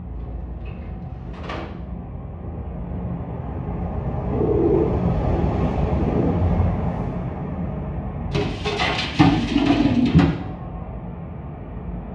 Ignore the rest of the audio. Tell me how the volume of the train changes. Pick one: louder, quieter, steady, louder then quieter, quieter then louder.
louder then quieter.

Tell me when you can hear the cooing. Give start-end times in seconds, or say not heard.
0.1-1.7, 4.3-6.3, 8.3-10.3.